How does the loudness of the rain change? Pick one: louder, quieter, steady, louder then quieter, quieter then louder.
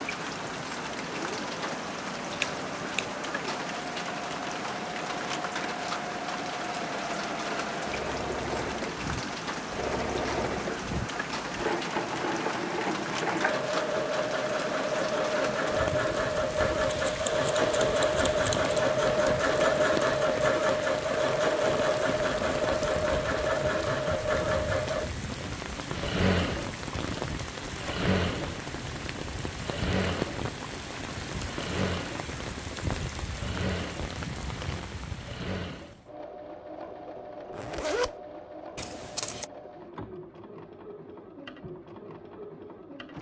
steady.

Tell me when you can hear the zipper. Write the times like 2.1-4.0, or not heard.
37.5-38.1.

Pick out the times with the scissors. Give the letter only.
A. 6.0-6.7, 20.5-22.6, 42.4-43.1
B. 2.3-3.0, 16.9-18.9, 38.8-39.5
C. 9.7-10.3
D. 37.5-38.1
B.